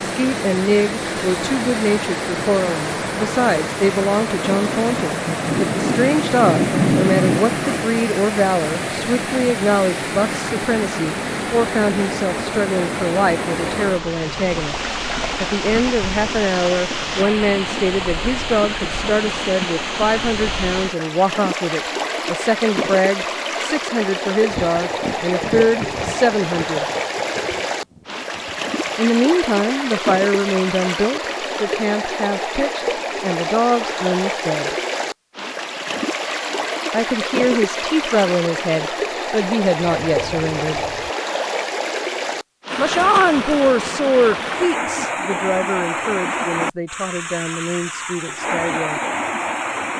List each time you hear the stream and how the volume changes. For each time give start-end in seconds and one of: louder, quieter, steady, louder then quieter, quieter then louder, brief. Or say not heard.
0.0-49.9 steady.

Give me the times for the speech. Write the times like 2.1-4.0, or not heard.
0.0-26.9, 28.9-34.8, 36.9-40.8, 42.8-49.0.